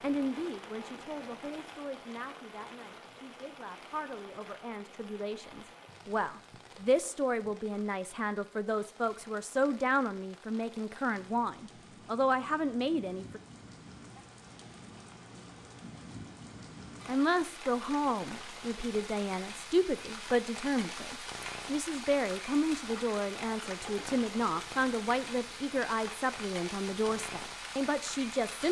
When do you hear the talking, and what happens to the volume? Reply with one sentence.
The talking can be heard from 0.0 to 13.4 s, getting louder; and from 17.1 to 28.6 s, at a steady volume.